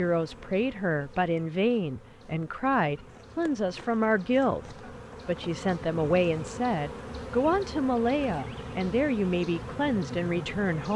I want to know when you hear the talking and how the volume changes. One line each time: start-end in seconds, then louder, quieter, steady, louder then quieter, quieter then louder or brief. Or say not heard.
0.0-10.9 steady.